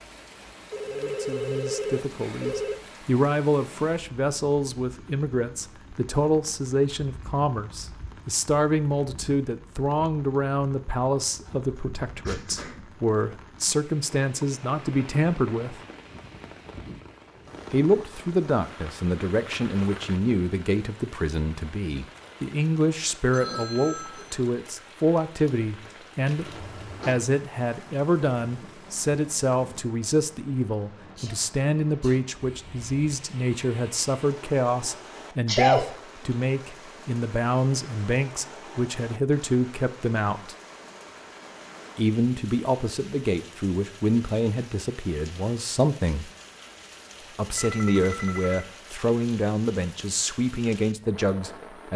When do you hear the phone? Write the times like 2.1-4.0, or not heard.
0.7-2.8, 23.3-24.4, 47.5-48.7.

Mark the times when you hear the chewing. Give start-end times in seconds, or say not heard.
not heard.